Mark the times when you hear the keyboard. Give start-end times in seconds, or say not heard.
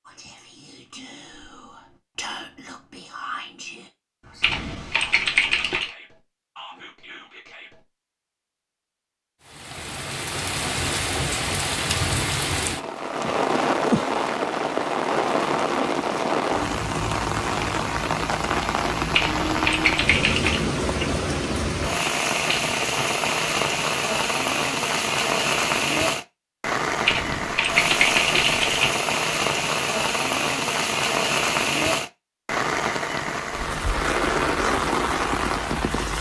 4.4-5.9, 19.1-20.6, 27.1-28.9.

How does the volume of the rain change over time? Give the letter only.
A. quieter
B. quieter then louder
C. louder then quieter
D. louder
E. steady
E.